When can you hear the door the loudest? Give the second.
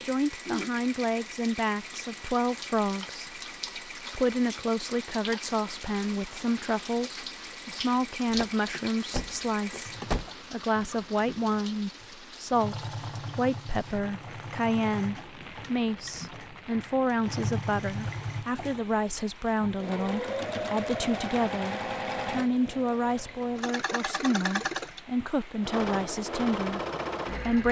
10 s.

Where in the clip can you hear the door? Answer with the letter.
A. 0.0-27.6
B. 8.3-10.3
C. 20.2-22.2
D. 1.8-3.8
B.